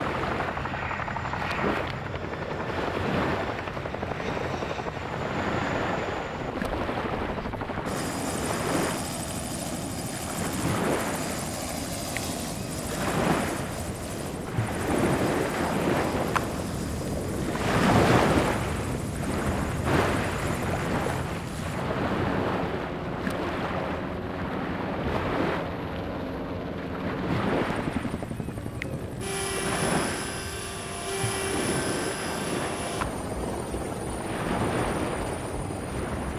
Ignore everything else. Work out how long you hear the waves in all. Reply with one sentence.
The waves can be heard for 36 seconds in total.